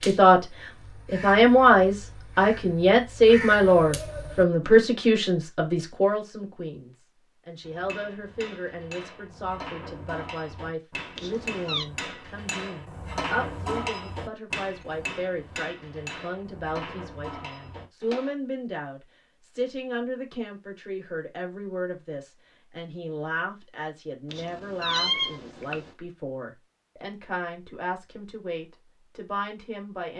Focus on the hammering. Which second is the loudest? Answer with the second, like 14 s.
14 s.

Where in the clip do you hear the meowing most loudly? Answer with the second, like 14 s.
25 s.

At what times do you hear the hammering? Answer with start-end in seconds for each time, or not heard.
7.6-18.4.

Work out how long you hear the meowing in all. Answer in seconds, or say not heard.
2 s.